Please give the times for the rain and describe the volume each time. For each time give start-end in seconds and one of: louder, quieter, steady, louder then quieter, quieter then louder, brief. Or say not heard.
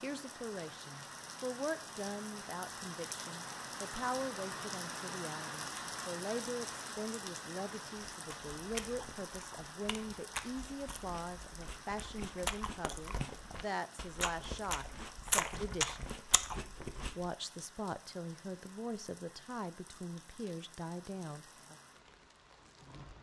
0.0-23.1 quieter.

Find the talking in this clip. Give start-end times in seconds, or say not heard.
0.0-16.1, 17.1-21.8.